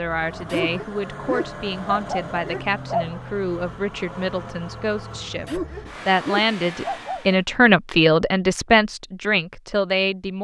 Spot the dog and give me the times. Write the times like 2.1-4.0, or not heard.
0.5-3.4, 5.5-7.3.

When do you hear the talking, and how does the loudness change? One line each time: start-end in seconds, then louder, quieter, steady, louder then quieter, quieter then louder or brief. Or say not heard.
0.0-10.3 louder.